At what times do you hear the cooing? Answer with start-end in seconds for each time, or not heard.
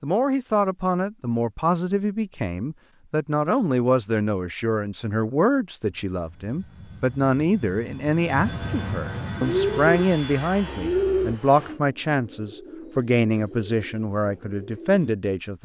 9.3-15.1.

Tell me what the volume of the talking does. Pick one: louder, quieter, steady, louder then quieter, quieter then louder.
steady.